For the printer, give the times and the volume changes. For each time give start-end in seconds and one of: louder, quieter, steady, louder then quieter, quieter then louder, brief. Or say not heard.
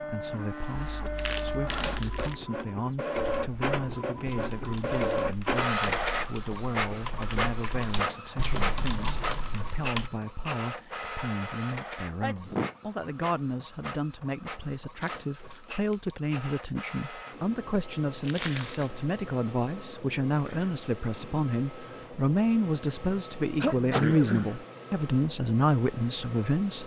0.0-26.8 quieter.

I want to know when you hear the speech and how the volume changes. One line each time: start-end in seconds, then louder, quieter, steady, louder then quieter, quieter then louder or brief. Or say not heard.
0.0-26.8 louder.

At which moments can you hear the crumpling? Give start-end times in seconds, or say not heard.
0.8-2.4, 14.9-16.1, 18.2-18.9.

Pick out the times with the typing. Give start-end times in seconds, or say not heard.
3.1-10.1.